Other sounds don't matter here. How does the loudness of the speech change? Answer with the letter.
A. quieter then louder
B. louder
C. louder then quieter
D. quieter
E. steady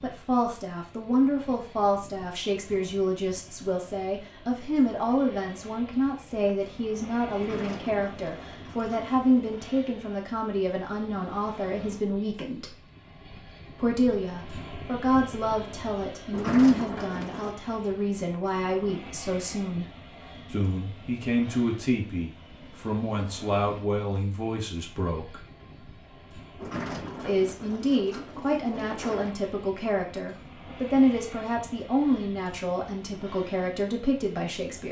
E.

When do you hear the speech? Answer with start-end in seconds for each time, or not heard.
0.0-12.8, 13.8-19.9, 20.5-25.4, 27.2-34.8.